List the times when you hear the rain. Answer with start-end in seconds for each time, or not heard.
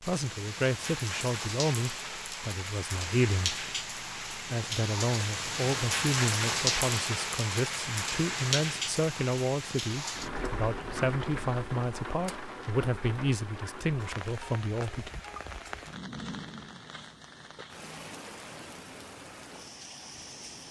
0.0-20.6.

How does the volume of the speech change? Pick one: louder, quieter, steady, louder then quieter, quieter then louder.
steady.